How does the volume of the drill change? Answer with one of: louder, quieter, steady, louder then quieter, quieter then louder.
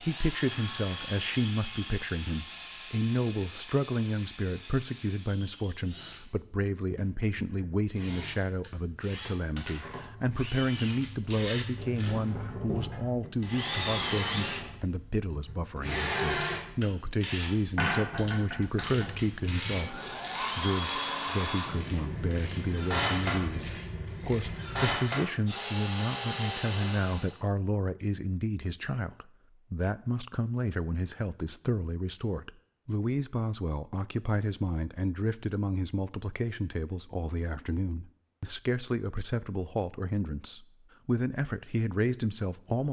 louder.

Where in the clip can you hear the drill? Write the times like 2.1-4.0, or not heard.
0.0-27.4.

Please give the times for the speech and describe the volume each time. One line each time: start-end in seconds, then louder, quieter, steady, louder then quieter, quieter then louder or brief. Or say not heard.
0.0-42.8 steady.